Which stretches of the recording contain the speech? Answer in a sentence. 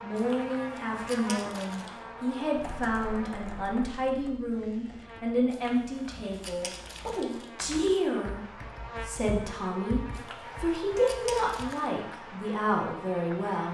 The speech can be heard from 0.0 to 13.7 s.